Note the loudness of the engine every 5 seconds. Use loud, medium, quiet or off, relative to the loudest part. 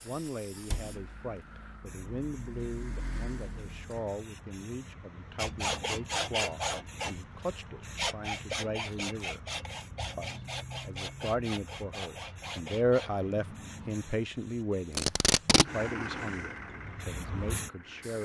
medium, off, off, loud.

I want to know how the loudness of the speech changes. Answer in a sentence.
The loudness of the speech goes up, then down.